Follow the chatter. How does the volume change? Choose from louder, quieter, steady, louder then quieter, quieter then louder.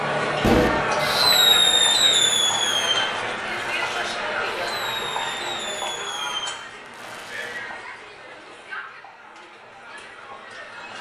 quieter.